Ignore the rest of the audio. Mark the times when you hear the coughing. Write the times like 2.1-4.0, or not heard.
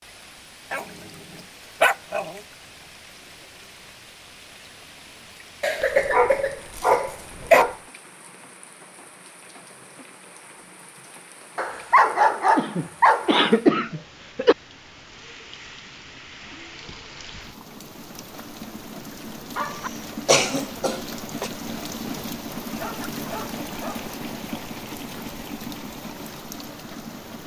5.6-7.7, 12.6-14.6, 20.2-21.5.